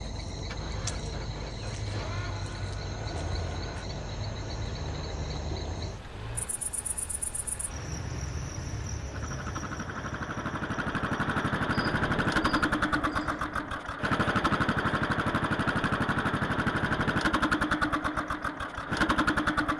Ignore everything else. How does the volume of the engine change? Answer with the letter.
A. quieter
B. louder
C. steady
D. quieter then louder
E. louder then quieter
B.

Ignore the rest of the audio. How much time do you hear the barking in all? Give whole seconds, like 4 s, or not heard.
not heard.